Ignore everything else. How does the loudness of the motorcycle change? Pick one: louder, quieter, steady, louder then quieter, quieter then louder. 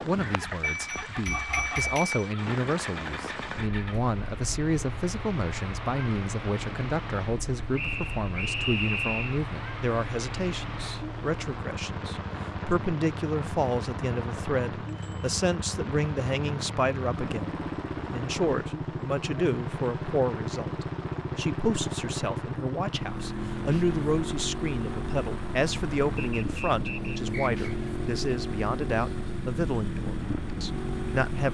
louder.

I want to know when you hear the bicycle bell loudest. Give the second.
2 s.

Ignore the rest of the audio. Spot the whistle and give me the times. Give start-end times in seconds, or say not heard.
7.8-9.4, 26.2-27.6.